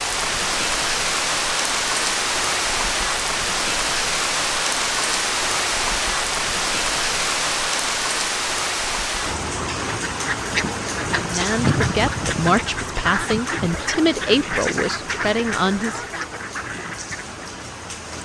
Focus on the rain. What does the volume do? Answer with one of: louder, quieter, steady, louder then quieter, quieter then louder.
quieter.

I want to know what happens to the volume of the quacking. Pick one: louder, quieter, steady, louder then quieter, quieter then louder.
quieter.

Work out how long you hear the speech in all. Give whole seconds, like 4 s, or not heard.
5 s.